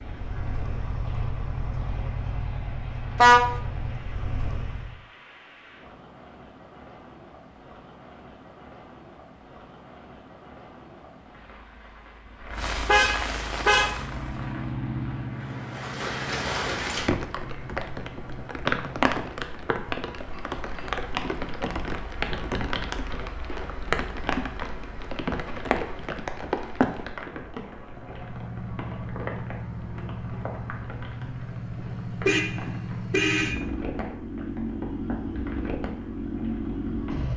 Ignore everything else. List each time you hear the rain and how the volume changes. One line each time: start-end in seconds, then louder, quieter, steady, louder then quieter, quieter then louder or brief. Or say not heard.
0.0-37.3 louder then quieter.